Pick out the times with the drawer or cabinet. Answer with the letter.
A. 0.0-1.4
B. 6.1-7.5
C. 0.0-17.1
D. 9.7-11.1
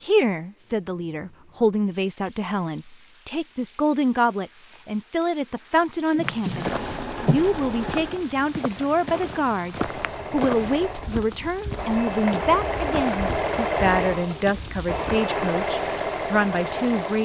B.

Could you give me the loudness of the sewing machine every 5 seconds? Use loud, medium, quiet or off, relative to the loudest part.
off, medium, loud, loud.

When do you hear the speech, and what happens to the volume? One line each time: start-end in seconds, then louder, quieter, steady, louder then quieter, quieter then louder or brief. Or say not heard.
0.0-17.1 steady.